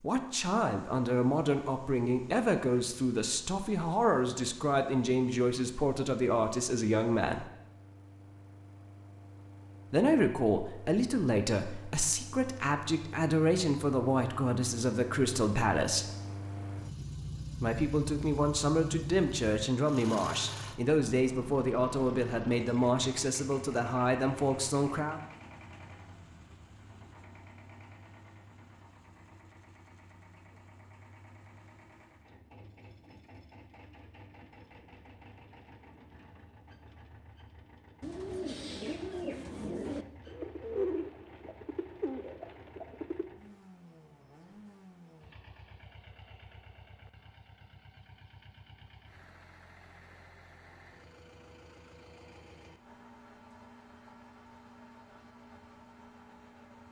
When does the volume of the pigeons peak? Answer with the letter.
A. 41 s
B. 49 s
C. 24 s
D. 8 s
A.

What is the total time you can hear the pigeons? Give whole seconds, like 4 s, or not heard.
5 s.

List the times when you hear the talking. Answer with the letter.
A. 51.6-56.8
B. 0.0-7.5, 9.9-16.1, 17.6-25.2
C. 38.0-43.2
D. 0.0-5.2
B.